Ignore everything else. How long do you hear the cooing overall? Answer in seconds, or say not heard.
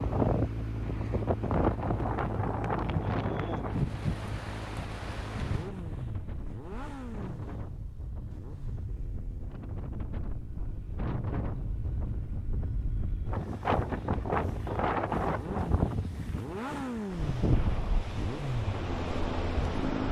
not heard.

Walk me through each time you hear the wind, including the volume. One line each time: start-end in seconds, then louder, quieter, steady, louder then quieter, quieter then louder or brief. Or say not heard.
0.0-20.0 quieter then louder.